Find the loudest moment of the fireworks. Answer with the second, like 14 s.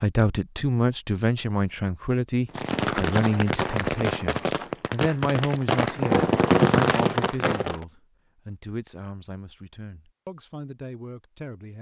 7 s.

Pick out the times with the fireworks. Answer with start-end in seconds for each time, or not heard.
2.5-7.8.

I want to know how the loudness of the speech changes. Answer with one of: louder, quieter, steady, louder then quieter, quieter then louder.
quieter.